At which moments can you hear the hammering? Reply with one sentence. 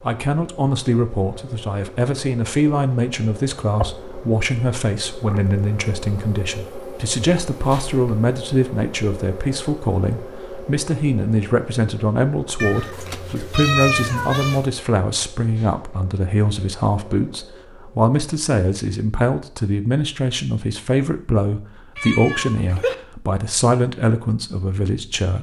You can't hear the hammering here.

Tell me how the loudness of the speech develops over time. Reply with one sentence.
The volume of the speech stays about the same.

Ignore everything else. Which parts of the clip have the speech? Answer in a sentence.
You can hear the speech from 0.0 to 25.3 s.